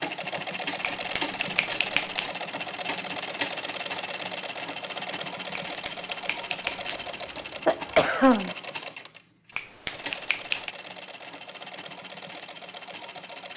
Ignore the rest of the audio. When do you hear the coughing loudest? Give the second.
8 s.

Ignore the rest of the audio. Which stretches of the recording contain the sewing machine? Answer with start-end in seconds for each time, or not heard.
0.0-13.5.